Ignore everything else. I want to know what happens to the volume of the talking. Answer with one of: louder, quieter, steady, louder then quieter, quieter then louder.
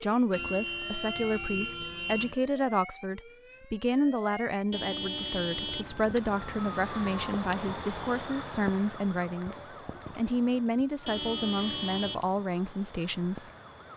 steady.